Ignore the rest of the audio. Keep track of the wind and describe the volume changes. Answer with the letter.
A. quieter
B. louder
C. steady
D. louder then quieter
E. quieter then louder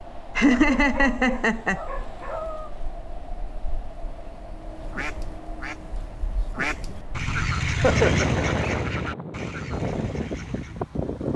B.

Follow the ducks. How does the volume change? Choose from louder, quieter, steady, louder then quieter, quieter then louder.
louder then quieter.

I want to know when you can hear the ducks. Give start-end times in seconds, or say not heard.
4.8-10.8.